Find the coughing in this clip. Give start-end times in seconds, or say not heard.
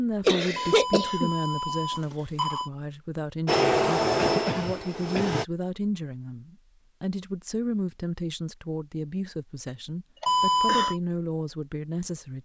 0.2-1.3, 4.2-5.5, 10.2-10.9.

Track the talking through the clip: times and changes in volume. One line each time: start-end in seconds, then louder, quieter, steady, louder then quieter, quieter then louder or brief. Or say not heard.
0.0-12.4 steady.